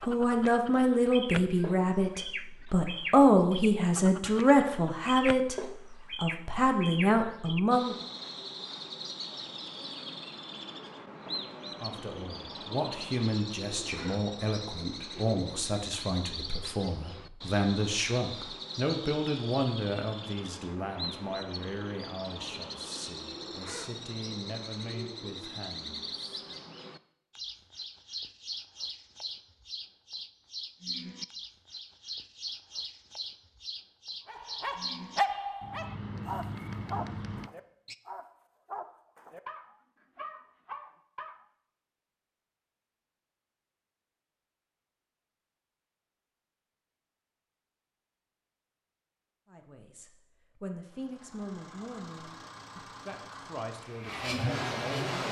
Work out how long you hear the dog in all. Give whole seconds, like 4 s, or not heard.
7 s.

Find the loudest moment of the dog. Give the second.
35 s.